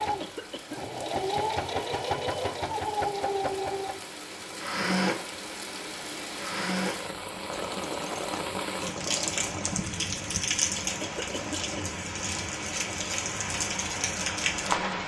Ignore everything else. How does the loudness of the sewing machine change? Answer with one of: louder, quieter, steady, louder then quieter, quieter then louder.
quieter.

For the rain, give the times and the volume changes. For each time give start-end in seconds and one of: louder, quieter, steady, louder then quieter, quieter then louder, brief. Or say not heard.
0.0-15.0 louder.